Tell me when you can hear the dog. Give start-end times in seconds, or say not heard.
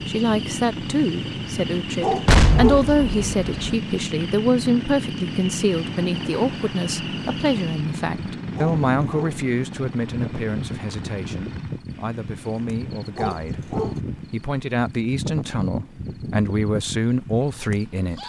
2.0-2.9, 8.6-9.4, 13.2-14.0.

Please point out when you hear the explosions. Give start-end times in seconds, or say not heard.
2.2-3.8.